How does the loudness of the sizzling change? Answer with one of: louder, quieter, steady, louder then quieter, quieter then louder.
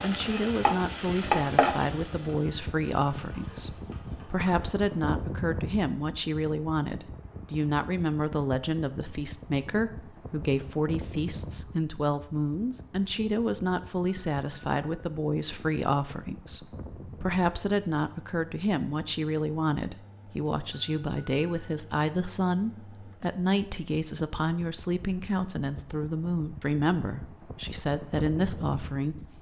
louder then quieter.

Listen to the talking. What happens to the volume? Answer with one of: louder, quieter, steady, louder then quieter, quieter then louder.
steady.